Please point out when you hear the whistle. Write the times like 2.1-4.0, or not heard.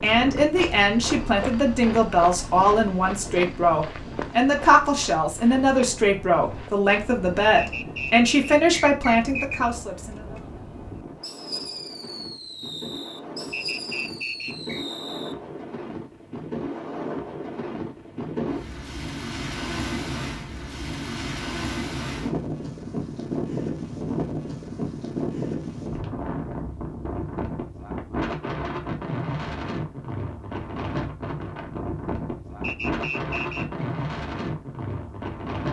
7.5-9.6, 13.5-14.8, 32.6-33.9.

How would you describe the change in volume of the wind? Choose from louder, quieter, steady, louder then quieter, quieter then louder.
louder.